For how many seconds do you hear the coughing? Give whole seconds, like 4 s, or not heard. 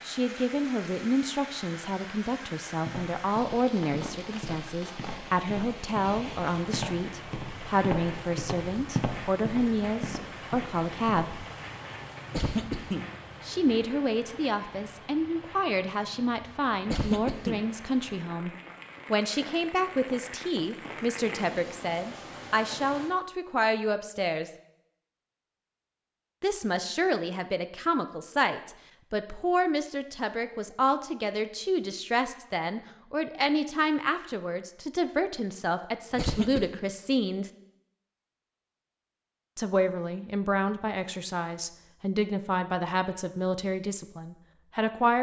2 s.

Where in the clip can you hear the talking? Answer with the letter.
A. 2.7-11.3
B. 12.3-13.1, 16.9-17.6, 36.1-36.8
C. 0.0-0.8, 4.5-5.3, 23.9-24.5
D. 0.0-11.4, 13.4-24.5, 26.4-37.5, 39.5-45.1
D.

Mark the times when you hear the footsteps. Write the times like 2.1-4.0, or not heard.
2.7-11.3.